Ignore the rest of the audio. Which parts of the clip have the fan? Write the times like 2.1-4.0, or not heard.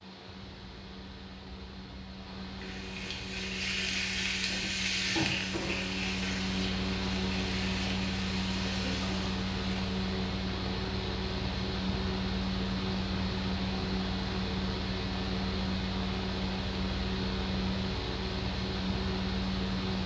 0.0-20.0.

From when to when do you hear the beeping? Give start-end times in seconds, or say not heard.
not heard.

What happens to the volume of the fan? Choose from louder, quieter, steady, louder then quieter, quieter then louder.
louder.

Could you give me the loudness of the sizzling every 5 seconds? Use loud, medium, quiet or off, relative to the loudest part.
loud, loud, off, off.